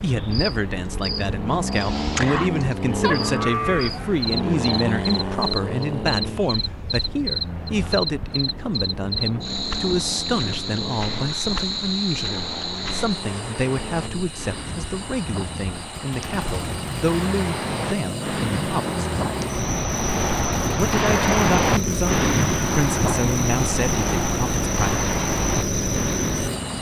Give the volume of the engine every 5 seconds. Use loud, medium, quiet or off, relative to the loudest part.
loud, medium, medium, loud, loud, loud.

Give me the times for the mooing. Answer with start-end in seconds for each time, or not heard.
3.0-4.5.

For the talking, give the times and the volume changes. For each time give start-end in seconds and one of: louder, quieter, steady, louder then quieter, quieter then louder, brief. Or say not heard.
0.0-19.0 steady
20.8-25.1 quieter.